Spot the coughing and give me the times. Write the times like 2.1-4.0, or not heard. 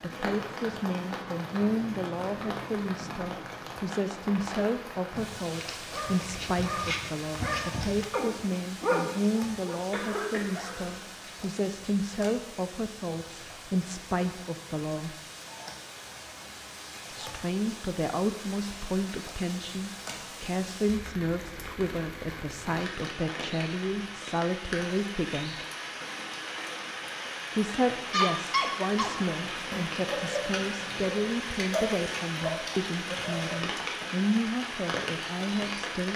9.9-11.1.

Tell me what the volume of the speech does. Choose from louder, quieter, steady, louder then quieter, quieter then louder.
steady.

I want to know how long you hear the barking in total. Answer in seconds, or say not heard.
11 s.